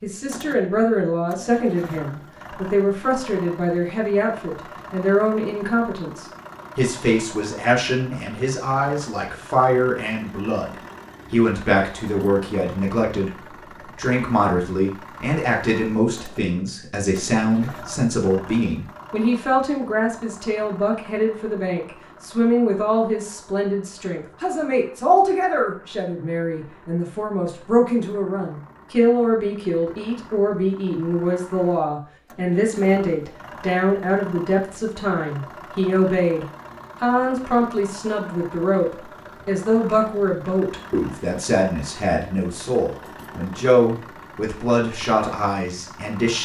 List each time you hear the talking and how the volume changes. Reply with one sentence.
The talking can be heard from 0.0 to 46.4 s, at a steady volume.